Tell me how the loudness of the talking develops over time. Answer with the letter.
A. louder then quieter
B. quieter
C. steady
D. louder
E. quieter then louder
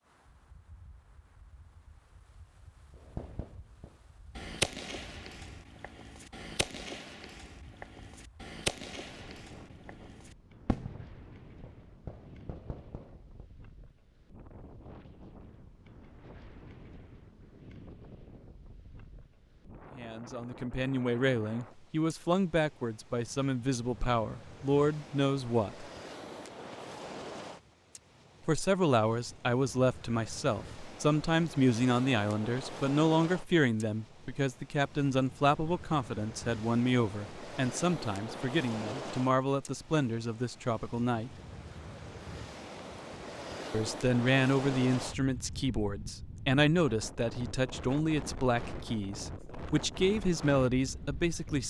C.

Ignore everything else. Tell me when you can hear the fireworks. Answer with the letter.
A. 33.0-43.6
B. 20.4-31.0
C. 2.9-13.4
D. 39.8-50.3
C.